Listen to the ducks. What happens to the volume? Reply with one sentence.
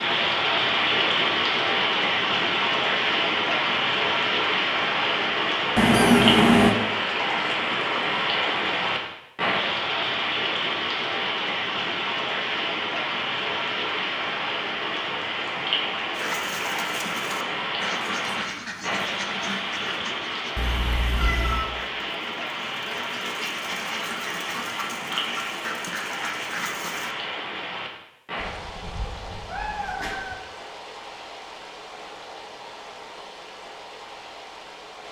The volume of the ducks goes down, then up.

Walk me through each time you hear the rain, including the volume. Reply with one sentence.
The rain can be heard from 0.0 to 35.0 s, getting quieter.